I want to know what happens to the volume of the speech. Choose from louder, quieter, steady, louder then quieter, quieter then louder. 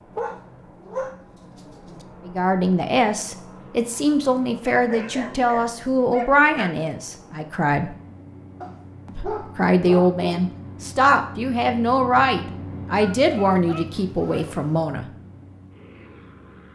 steady.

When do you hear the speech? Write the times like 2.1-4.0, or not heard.
2.2-8.0, 9.2-15.1.